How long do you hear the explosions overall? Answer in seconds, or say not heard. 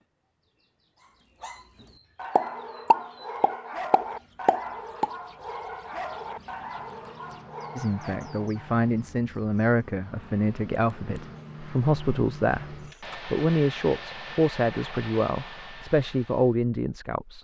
3 s.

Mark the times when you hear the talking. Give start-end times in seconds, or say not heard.
7.8-17.3.